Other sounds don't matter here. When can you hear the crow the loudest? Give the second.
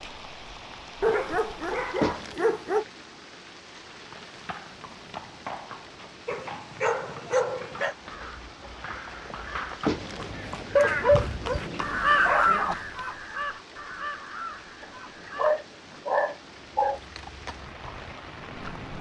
12 s.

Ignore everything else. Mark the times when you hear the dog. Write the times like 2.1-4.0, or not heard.
1.0-2.9, 6.2-8.0, 10.8-12.8, 14.8-17.0.